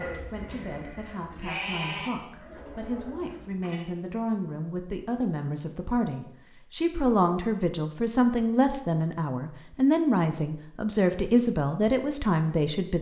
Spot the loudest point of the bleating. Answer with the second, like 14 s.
2 s.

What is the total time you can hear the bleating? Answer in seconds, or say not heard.
4 s.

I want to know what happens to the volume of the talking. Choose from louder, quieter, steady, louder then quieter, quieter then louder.
louder.